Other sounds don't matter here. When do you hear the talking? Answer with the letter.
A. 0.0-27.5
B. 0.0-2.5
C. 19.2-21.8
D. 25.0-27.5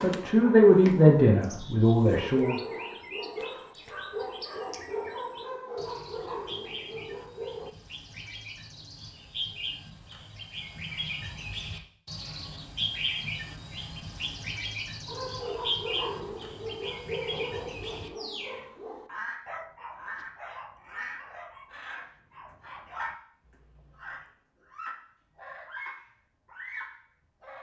B.